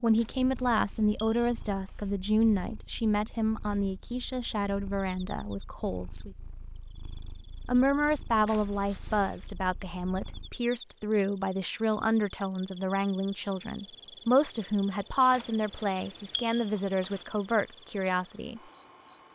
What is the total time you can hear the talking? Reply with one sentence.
The talking can be heard for 17 seconds in total.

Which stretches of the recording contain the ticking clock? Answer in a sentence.
The ticking clock can't be heard in this clip.